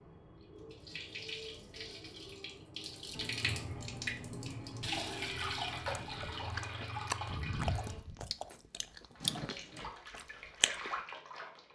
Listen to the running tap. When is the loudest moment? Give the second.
5 s.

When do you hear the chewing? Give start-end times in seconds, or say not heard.
6.0-10.9.